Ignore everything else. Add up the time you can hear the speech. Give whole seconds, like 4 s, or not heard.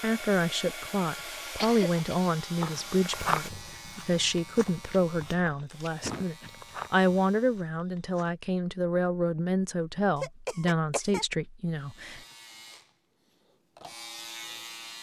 12 s.